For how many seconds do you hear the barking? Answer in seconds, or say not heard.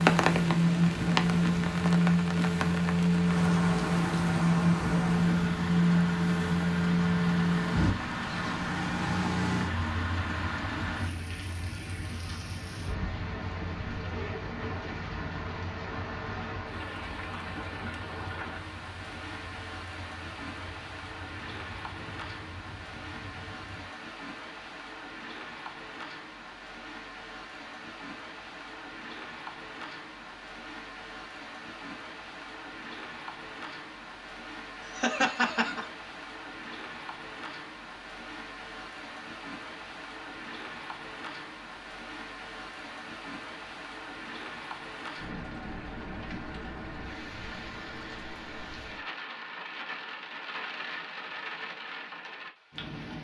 not heard.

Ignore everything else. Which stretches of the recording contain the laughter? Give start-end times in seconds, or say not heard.
34.8-35.9.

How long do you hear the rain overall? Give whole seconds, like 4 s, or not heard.
53 s.